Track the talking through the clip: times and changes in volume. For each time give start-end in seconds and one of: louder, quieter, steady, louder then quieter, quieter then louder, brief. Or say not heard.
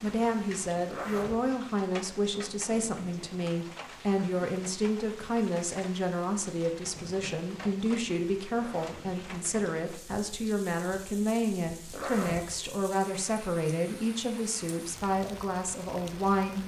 0.0-16.6 steady.